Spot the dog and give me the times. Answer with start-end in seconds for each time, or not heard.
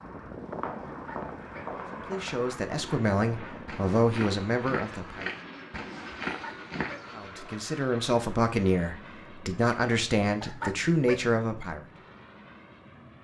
0.9-1.8, 6.2-7.2, 10.4-11.3.